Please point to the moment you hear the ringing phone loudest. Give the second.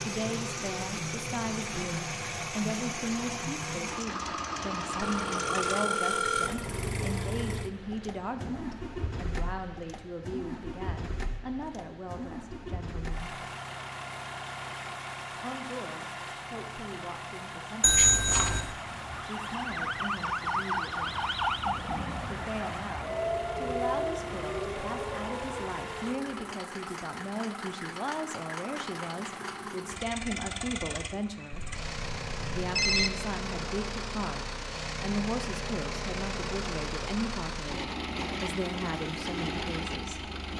18 s.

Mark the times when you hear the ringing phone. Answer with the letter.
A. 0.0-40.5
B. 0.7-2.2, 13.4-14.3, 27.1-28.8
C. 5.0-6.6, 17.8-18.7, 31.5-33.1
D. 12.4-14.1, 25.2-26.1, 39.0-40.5
C.